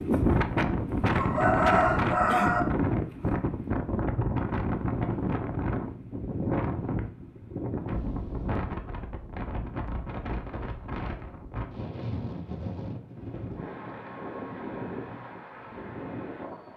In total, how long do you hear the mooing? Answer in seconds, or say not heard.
not heard.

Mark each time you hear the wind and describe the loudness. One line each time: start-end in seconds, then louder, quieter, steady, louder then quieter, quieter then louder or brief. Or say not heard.
0.0-16.7 quieter.